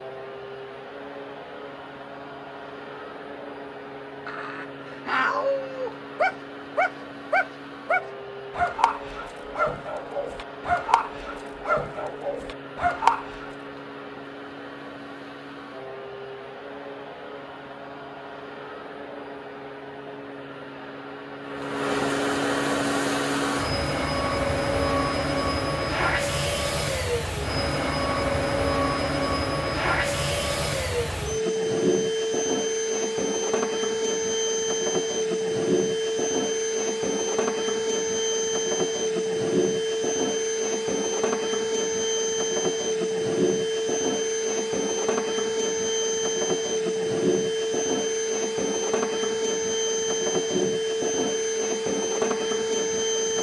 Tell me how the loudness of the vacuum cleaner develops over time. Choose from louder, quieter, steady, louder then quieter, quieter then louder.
louder.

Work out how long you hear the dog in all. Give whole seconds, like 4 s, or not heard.
9 s.